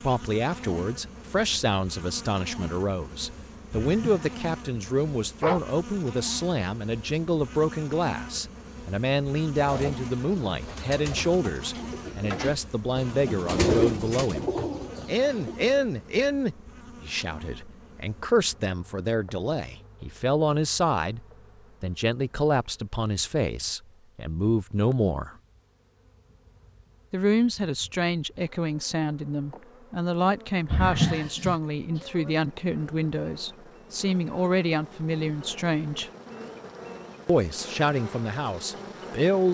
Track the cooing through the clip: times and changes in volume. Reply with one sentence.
The cooing can be heard from 9.5 to 15.9 s, getting louder then quieter.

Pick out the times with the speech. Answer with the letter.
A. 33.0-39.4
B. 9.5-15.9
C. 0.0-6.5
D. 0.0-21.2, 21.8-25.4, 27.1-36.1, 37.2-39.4
D.